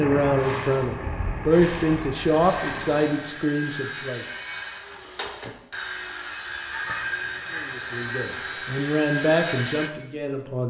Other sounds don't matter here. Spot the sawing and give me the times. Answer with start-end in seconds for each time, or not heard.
2.1-9.9.